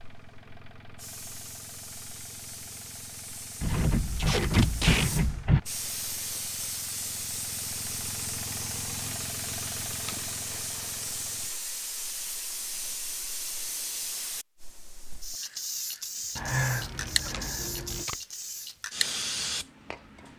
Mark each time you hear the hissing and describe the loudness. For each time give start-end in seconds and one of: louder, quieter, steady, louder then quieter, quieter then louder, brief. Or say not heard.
0.0-20.3 louder.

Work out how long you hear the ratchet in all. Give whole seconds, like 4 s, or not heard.
4 s.